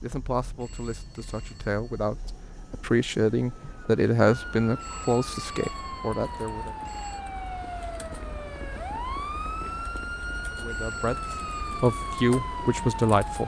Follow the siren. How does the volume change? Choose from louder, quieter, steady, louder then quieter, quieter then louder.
louder.